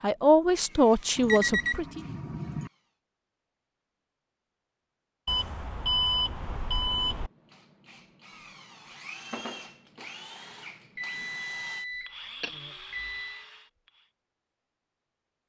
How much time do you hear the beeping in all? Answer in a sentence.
The beeping can be heard for 6 seconds in total.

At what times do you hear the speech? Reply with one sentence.
The speech can be heard from 0.0 to 2.0 s.